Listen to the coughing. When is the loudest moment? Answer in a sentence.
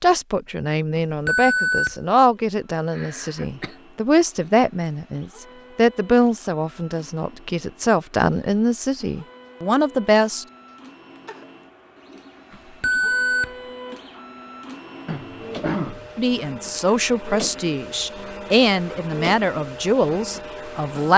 The loudest moment of the coughing is at 16 seconds.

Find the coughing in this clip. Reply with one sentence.
You can hear the coughing from 2.9 to 3.8 s, from 10.7 to 11.5 s and from 15.1 to 16.1 s.